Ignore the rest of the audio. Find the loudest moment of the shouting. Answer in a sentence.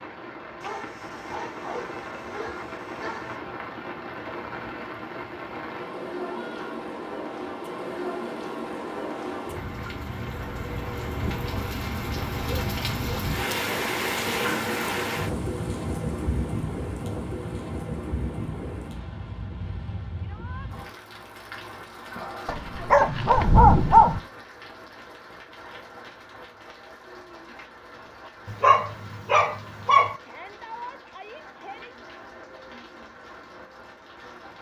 The volume of the shouting peaks at 31 seconds.